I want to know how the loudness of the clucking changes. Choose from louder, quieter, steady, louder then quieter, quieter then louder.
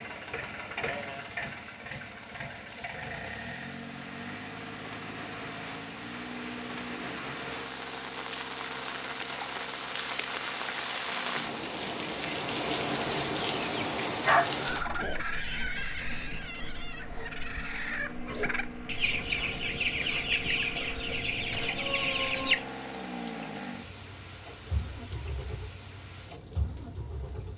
quieter then louder.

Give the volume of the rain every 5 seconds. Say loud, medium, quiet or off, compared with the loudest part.
quiet, medium, loud, quiet, quiet, quiet.